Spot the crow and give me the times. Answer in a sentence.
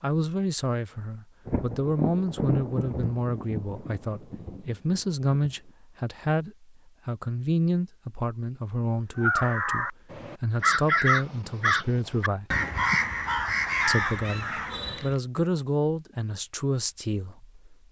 The crow can be heard from 9.2 to 15.2 s.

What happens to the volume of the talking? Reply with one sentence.
The loudness of the talking stays about the same.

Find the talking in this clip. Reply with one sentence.
The talking can be heard from 0.0 to 12.4 s and from 13.8 to 17.8 s.